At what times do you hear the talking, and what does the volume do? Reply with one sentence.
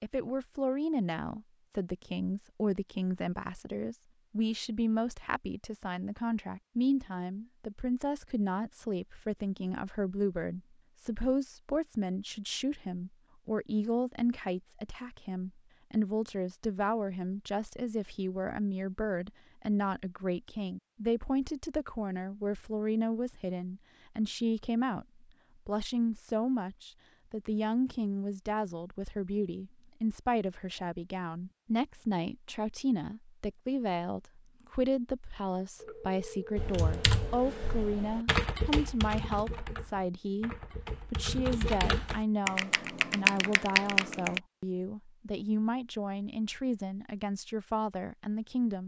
You can hear the talking from 0.0 to 48.8 s, at a steady volume.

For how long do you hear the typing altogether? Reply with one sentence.
The typing can be heard for 8 seconds in total.